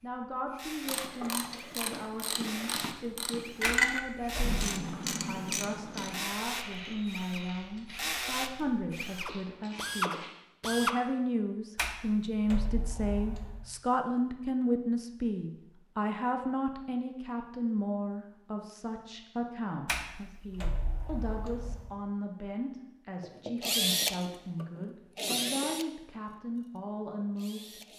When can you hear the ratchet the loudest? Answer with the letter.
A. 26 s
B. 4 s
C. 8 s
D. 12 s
B.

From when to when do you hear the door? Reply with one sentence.
You can hear the door from 3.6 to 4.7 s, from 11.8 to 13.7 s and from 19.9 to 21.9 s.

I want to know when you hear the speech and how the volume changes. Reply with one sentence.
The speech can be heard from 0.0 to 27.8 s, getting louder then quieter.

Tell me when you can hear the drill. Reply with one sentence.
You can hear the drill from 0.0 to 10.9 s and from 23.2 to 27.9 s.